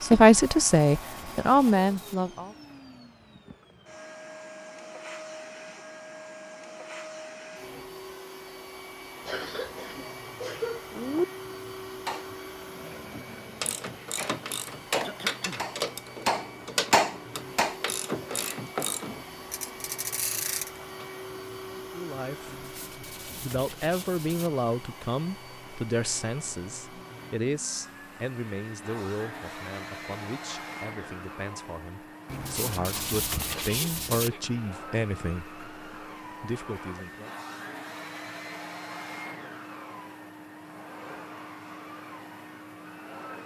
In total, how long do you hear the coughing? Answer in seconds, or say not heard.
4 s.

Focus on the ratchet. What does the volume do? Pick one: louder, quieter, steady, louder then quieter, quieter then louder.
steady.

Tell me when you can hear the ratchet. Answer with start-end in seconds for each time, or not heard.
13.1-21.2.